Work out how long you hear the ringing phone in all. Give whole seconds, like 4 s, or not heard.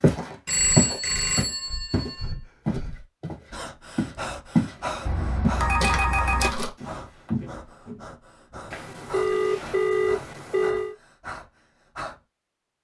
6 s.